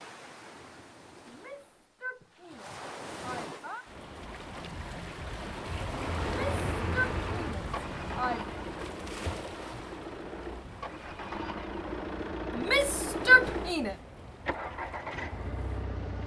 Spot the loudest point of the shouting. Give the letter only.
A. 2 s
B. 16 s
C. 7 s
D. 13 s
D.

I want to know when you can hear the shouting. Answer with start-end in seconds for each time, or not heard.
1.2-3.9, 6.2-8.6, 12.6-13.9.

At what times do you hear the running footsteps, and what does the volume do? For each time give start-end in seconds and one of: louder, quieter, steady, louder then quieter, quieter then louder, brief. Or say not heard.
not heard.